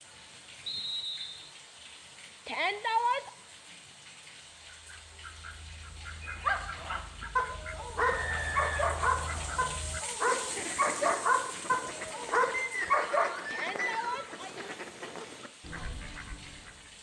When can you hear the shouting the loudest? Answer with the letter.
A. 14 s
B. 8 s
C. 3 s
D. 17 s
C.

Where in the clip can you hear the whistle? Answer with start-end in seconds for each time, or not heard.
0.7-1.5, 8.0-9.8, 12.5-14.3.